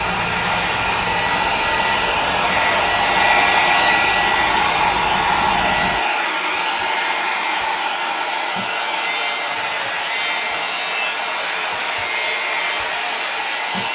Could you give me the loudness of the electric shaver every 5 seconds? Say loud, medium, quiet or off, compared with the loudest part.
medium, loud, loud.